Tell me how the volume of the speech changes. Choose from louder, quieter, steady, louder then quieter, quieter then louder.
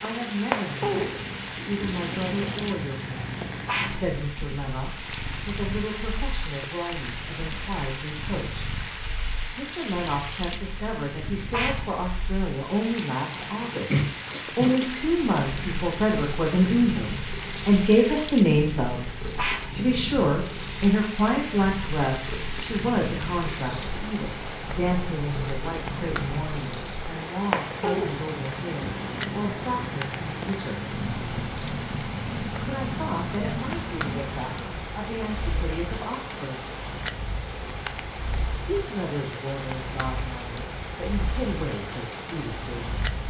louder then quieter.